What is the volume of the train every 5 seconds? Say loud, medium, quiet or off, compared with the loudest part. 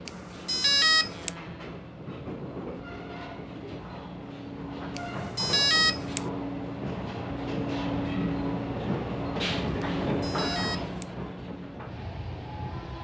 medium, loud, loud.